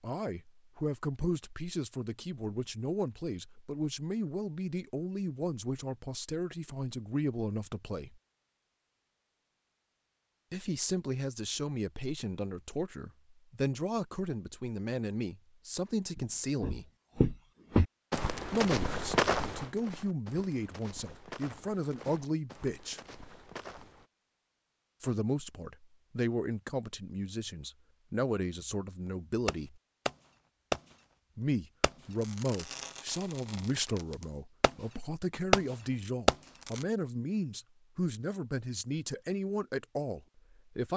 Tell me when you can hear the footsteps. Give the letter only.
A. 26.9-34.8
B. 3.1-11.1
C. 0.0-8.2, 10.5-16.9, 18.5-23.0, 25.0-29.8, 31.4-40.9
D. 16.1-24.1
D.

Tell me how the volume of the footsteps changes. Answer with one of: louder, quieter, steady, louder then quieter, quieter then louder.
quieter.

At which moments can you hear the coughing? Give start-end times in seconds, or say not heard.
not heard.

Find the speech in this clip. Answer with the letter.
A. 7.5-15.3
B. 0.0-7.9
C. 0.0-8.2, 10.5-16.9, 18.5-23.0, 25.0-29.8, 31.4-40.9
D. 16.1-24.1
C.